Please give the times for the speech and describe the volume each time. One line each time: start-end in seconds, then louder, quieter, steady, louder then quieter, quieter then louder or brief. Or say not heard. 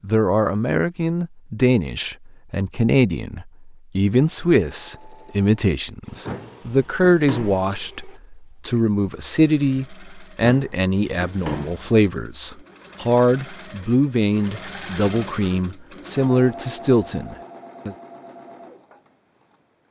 0.0-17.9 steady.